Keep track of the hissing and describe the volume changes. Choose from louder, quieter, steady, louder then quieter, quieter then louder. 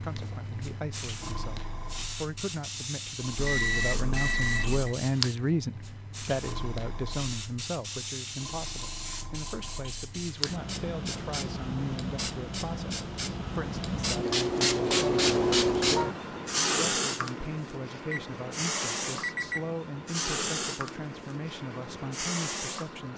louder then quieter.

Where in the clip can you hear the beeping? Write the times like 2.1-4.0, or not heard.
3.4-5.0, 18.1-19.7.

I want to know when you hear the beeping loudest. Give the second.
4 s.